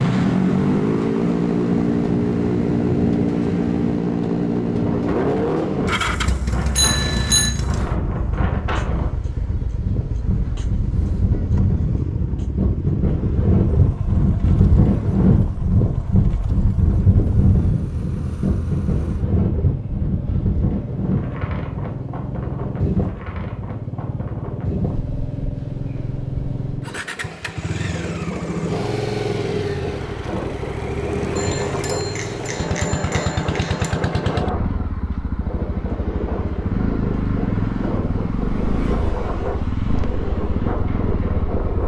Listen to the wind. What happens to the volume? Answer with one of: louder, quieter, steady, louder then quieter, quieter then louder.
louder then quieter.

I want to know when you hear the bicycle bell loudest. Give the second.
7 s.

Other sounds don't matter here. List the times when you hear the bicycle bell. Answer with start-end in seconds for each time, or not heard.
6.8-7.5, 31.4-33.9.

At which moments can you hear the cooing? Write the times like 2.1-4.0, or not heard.
not heard.